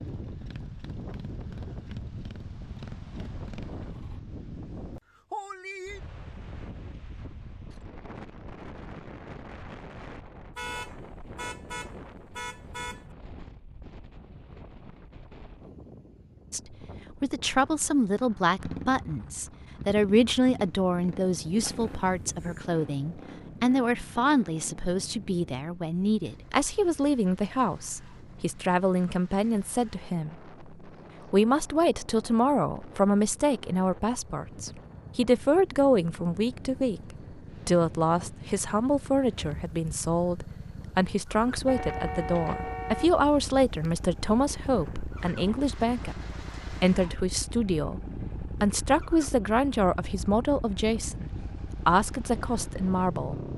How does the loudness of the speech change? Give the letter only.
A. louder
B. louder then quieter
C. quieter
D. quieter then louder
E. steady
E.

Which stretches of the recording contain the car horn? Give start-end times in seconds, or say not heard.
10.6-13.2, 21.6-22.7, 41.6-43.2.